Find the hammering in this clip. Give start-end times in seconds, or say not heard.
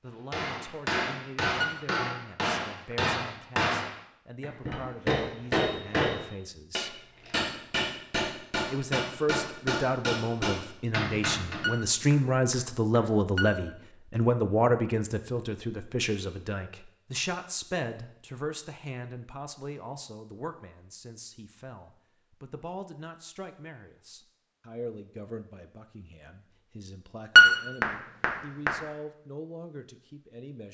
0.3-11.7.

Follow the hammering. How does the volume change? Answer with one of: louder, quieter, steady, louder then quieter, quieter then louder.
steady.